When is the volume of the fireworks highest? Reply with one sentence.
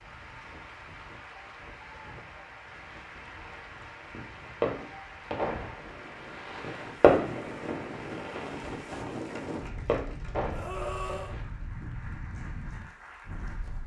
The loudest moment of the fireworks is at 7 seconds.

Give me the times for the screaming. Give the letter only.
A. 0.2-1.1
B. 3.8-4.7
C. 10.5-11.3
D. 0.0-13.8
C.